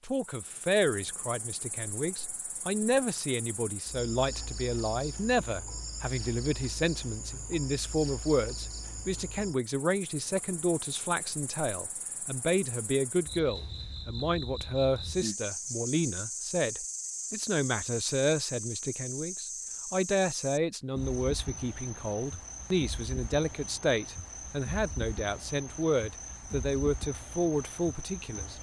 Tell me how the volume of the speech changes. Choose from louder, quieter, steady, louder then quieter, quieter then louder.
steady.